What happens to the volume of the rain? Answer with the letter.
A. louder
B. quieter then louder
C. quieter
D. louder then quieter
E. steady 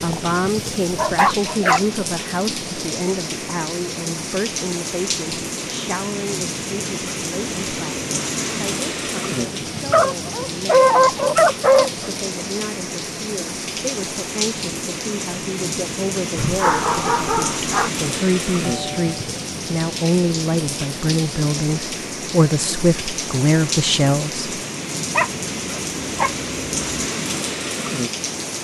E.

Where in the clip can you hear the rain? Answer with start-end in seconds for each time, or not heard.
0.0-28.5.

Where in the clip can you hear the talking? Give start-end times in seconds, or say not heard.
0.0-24.4.